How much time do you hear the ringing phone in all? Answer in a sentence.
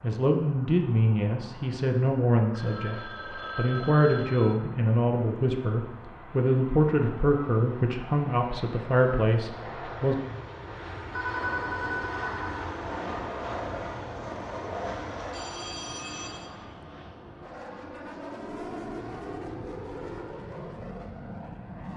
The ringing phone can be heard for 5 seconds in total.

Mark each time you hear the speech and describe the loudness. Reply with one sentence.
The speech can be heard from 0.0 to 10.2 s, at a steady volume.